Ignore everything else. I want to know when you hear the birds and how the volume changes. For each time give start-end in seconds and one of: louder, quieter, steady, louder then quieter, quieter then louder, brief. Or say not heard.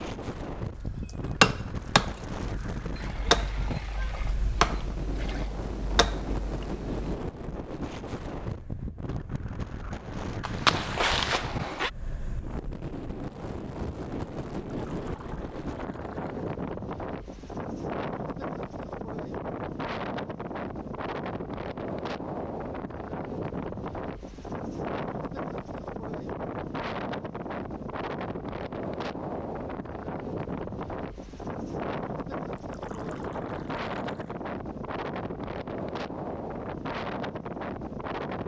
not heard.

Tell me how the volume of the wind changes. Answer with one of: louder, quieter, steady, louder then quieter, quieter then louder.
steady.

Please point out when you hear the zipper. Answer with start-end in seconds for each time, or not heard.
10.4-11.9.